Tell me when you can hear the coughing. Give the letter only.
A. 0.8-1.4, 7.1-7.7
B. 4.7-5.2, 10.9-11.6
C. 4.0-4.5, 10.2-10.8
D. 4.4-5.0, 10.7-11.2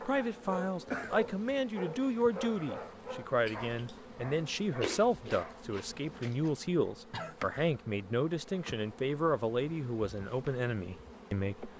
A.